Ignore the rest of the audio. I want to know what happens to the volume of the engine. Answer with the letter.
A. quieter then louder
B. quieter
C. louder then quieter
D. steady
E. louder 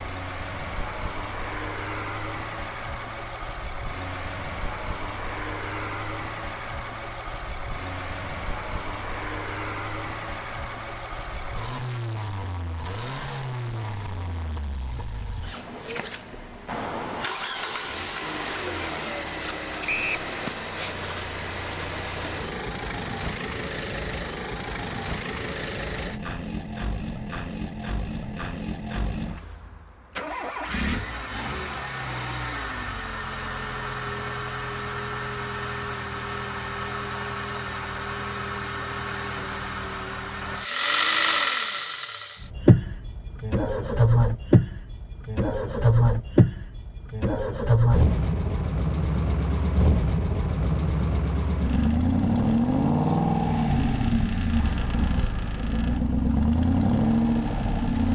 E.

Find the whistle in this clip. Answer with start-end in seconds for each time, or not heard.
19.9-20.3.